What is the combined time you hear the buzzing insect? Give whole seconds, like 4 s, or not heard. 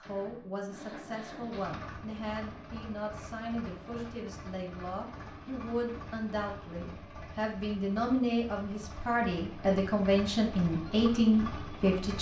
not heard.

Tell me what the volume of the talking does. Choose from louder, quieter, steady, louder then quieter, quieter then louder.
louder.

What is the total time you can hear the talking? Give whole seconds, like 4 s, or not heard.
12 s.